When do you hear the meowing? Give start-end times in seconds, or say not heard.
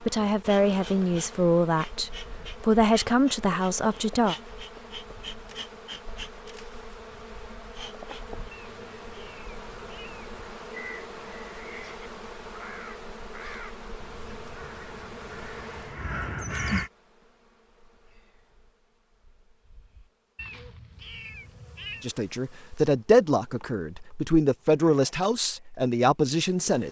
8.5-10.5, 20.4-22.1.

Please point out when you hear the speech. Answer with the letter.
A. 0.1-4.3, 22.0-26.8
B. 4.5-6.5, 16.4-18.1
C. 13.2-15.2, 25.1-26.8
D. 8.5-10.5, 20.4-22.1
A.